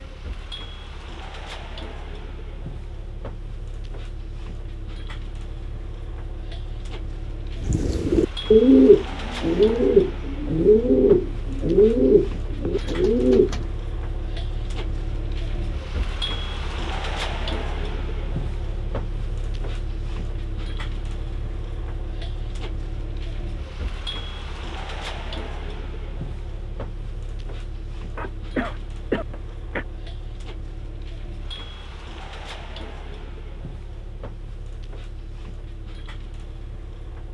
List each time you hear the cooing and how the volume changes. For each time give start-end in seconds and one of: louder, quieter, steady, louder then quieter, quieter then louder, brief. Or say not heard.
7.6-13.7 quieter.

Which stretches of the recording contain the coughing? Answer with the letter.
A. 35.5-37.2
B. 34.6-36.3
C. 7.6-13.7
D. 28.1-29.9
D.